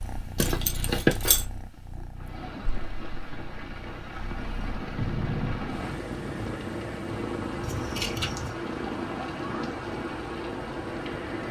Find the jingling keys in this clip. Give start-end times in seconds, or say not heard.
0.3-1.4, 7.6-8.6.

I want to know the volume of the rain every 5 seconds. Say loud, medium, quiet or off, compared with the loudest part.
medium, loud, loud.